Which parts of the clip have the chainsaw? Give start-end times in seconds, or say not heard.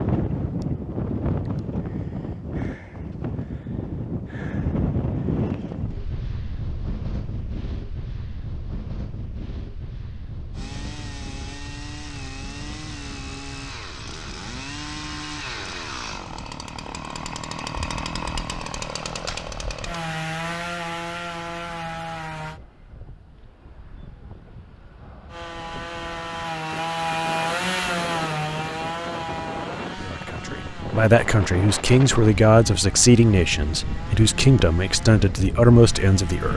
10.5-22.6, 25.2-36.5.